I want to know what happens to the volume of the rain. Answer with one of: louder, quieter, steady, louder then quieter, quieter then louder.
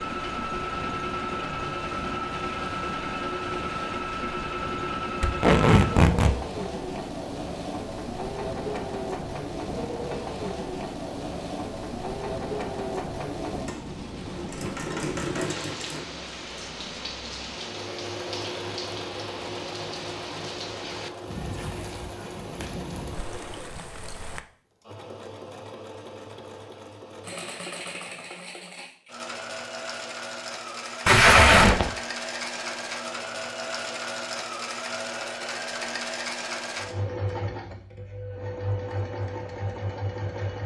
steady.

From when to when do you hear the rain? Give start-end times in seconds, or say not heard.
0.0-24.4.